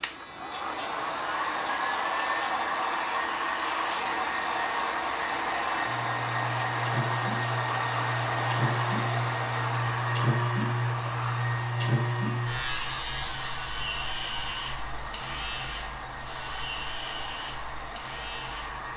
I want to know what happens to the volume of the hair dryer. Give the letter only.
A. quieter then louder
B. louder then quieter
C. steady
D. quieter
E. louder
D.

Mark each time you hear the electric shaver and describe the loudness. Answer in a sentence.
You can hear the electric shaver from 0.0 to 18.9 s, getting louder then quieter.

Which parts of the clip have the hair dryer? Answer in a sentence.
You can hear the hair dryer from 0.0 to 18.9 s.